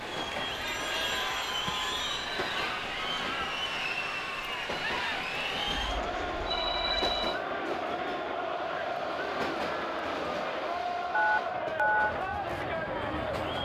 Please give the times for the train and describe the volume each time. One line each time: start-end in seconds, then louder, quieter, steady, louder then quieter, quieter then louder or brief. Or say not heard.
0.0-13.6 steady.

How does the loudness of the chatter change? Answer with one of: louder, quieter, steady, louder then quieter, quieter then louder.
steady.